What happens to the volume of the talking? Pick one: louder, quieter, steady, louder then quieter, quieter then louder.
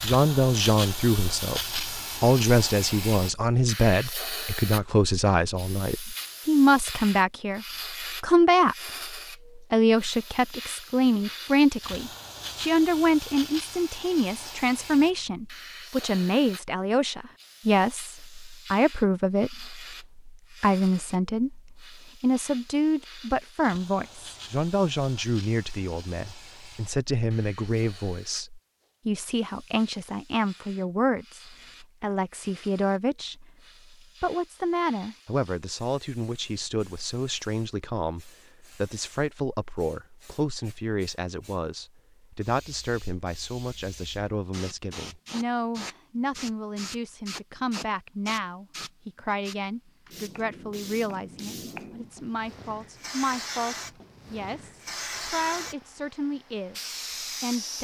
quieter.